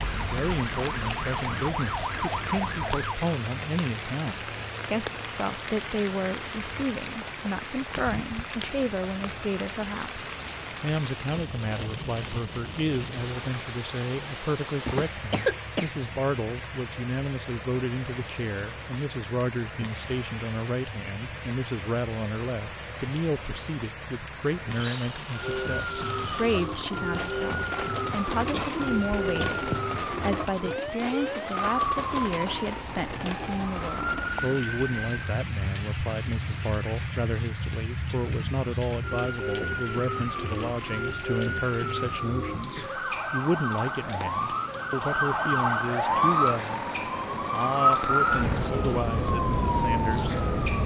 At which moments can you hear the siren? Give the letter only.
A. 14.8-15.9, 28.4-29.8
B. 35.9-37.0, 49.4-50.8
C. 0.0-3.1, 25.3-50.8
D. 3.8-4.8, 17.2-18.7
C.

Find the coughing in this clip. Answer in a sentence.
The coughing can be heard from 14.8 to 15.9 s and from 28.4 to 29.8 s.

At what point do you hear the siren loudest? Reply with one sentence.
The volume of the siren peaks at 48 seconds.